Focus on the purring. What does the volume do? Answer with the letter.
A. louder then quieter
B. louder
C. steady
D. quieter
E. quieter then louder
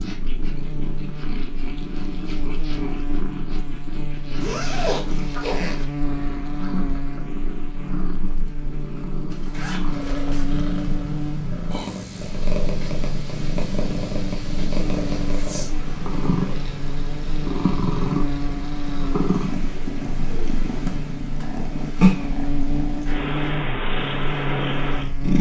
B.